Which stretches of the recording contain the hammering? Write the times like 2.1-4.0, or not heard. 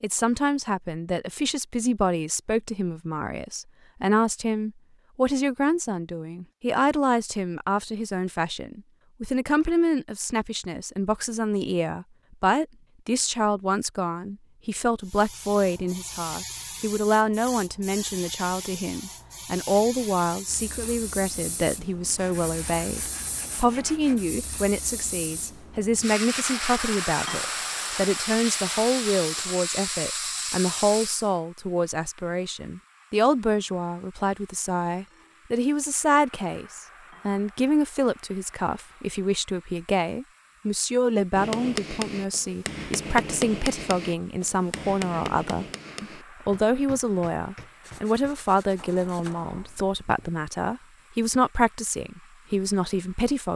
41.4-50.3.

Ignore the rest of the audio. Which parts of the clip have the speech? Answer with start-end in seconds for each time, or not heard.
0.0-53.5.